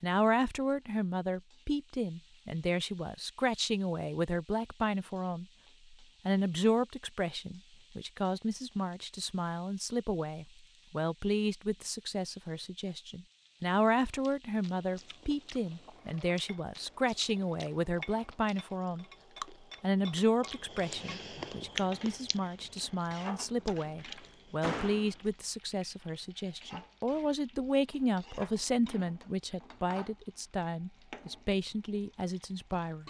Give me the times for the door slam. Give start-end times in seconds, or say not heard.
23.9-25.1.